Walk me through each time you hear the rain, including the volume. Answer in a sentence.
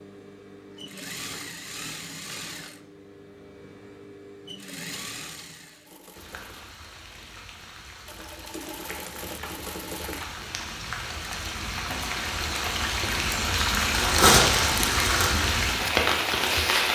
You can hear the rain from 6.1 to 16.9 s, getting louder.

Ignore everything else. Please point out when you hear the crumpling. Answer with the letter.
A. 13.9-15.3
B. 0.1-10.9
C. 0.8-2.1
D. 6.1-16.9
A.